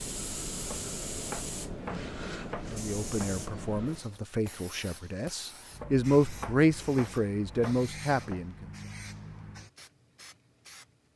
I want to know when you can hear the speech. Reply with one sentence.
You can hear the speech from 2.6 to 8.7 s.